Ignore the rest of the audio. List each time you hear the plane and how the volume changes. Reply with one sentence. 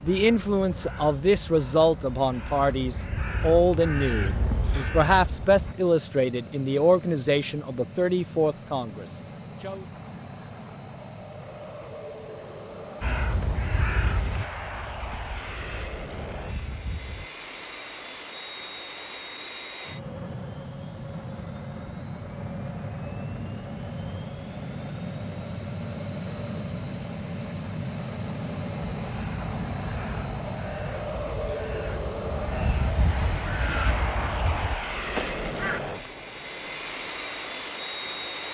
You can hear the plane from 0.0 to 38.4 s, getting louder.